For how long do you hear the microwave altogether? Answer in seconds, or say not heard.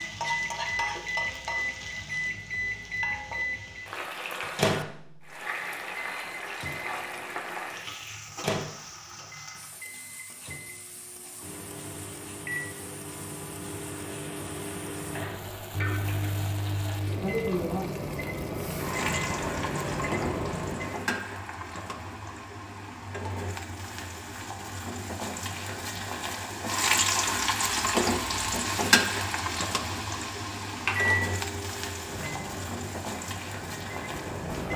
25 s.